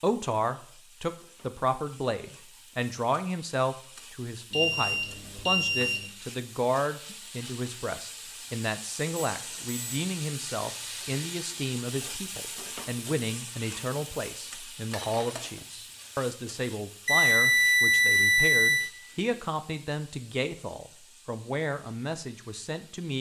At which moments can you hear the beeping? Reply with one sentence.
The beeping can be heard from 4.5 to 6.0 s, from 9.3 to 10.0 s and from 17.1 to 18.9 s.